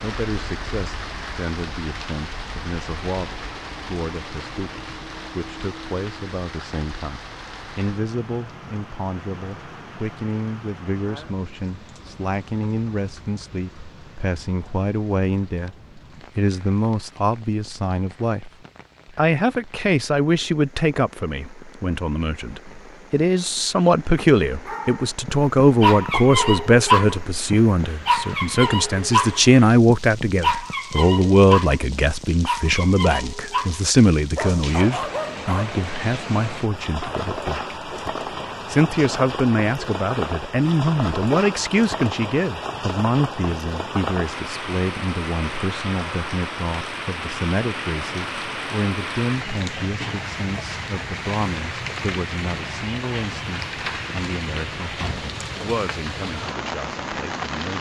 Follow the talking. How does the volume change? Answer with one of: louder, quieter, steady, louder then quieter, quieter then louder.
louder then quieter.